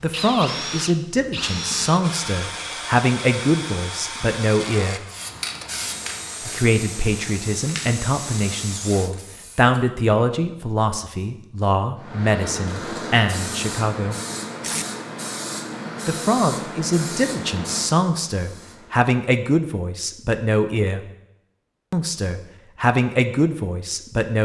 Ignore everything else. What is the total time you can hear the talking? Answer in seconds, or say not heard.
20 s.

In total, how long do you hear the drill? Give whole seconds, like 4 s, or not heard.
9 s.